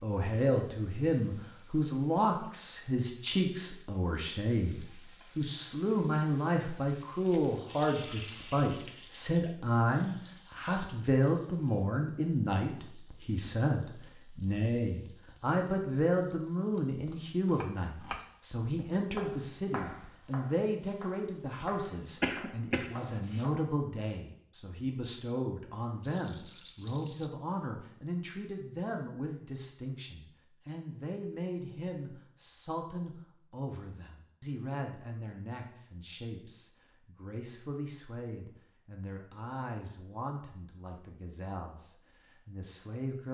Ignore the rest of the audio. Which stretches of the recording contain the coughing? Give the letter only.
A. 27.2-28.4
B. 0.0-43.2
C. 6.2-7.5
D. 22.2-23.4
D.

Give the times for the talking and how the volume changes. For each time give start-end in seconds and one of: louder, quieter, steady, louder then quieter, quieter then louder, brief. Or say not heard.
0.0-43.2 quieter.